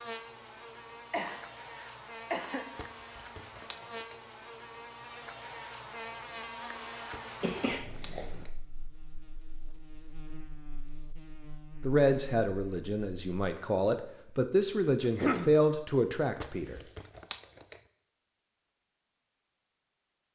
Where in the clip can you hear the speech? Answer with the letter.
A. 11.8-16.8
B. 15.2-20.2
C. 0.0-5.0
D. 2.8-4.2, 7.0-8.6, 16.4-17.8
A.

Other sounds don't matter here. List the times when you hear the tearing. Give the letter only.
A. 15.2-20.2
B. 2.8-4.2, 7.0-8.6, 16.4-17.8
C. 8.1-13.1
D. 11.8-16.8
B.